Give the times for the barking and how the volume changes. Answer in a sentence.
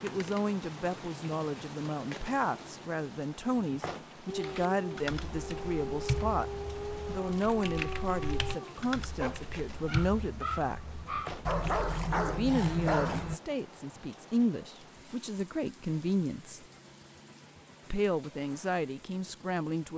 You can hear the barking from 4.2 to 13.4 s, getting louder.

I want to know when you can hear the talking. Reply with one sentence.
You can hear the talking from 0.0 to 10.9 s, from 12.2 to 16.6 s and from 17.9 to 19.9 s.